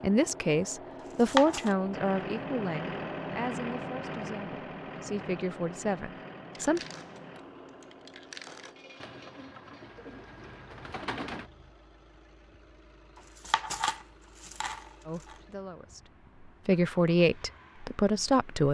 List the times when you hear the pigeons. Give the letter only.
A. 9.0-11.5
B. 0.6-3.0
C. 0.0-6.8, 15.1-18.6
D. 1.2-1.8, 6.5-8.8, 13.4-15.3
A.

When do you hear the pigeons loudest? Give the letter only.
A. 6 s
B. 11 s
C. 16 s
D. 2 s
B.